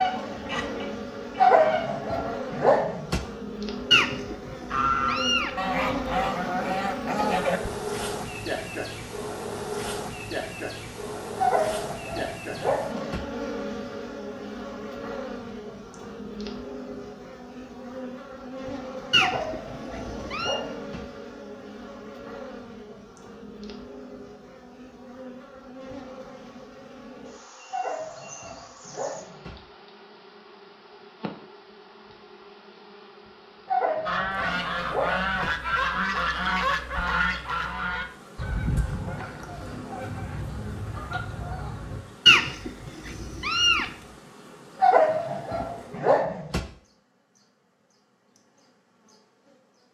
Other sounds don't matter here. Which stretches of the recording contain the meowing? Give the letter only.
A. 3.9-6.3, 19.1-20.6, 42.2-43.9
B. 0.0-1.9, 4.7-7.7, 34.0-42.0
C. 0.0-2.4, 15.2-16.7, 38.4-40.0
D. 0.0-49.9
A.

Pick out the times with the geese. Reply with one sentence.
You can hear the geese from 0.0 to 1.9 s, from 4.7 to 7.7 s and from 34.0 to 42.0 s.